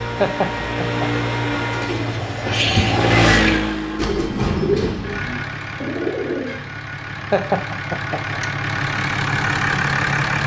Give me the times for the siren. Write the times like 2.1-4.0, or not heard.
0.0-1.9.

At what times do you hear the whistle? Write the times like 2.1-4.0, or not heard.
not heard.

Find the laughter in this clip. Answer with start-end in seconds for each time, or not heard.
0.2-1.2, 7.3-8.4.